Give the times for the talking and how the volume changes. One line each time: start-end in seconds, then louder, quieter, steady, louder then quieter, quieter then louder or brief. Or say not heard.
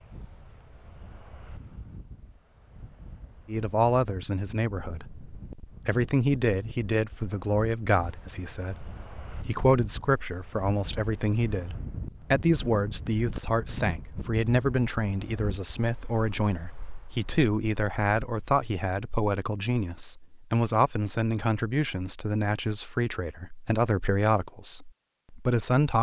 3.5-25.9 steady.